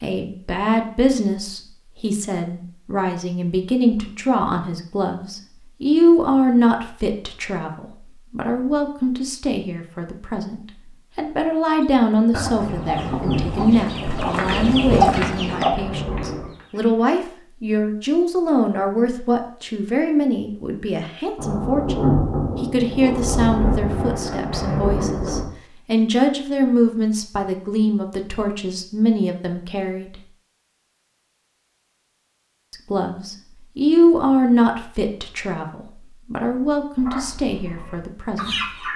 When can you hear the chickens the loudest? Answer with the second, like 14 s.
15 s.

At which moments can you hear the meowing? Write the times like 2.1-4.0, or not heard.
not heard.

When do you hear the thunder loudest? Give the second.
22 s.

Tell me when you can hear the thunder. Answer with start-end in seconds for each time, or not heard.
12.6-16.6, 21.4-25.4.